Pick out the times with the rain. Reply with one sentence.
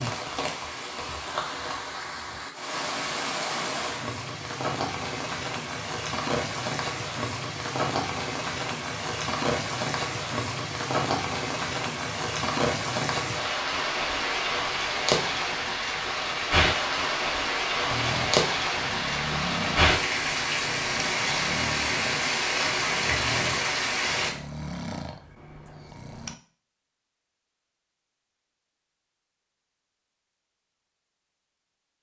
The rain can be heard from 0.0 to 24.3 s.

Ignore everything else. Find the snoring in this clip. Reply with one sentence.
You can hear the snoring from 17.9 to 26.4 s.